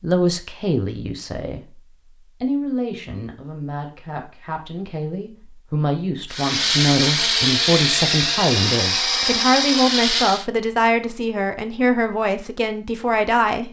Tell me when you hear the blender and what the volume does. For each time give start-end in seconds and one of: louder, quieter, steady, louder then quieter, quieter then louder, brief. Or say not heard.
6.3-10.4 steady.